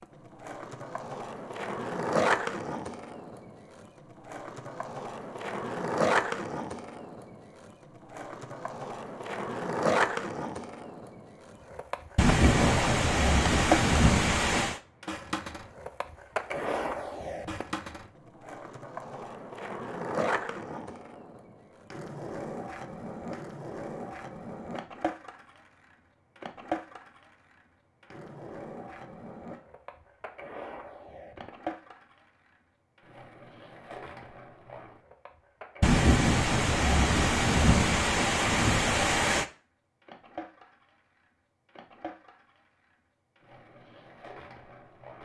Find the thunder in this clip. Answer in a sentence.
You can hear the thunder from 12.2 to 14.8 s and from 35.8 to 39.5 s.